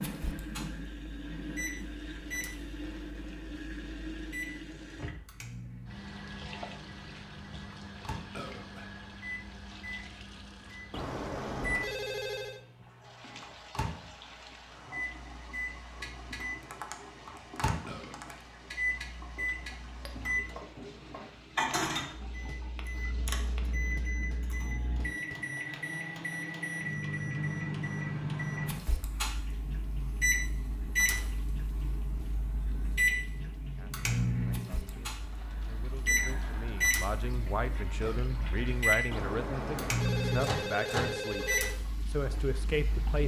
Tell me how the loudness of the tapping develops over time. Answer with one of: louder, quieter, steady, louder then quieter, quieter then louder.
quieter.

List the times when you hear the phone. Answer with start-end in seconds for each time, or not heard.
10.9-12.6, 39.1-41.8.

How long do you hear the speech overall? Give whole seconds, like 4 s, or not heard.
9 s.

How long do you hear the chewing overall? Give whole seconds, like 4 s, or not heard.
not heard.